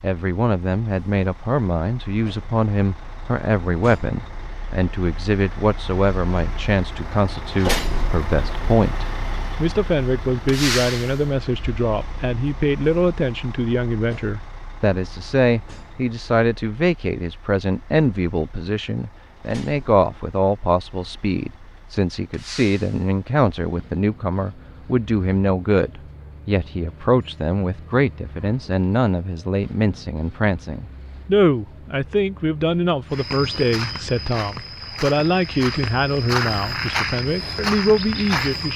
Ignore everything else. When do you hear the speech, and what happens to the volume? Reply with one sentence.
You can hear the speech from 0.0 to 38.7 s, at a steady volume.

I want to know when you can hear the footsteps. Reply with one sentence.
The footsteps can be heard from 33.1 to 38.7 s.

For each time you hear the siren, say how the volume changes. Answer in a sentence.
The siren can't be heard in this clip.